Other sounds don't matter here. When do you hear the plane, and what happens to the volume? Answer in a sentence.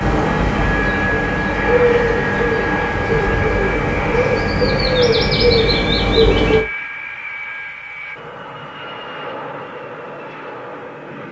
You can hear the plane from 0.0 to 11.2 s, getting quieter.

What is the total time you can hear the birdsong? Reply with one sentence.
The birdsong can be heard for 7 seconds in total.